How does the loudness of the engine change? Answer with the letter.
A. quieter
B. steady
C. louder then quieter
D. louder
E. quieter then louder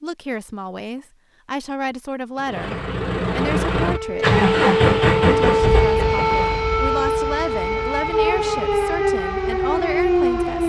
C.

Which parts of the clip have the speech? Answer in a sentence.
You can hear the speech from 0.0 to 4.3 s and from 5.2 to 10.6 s.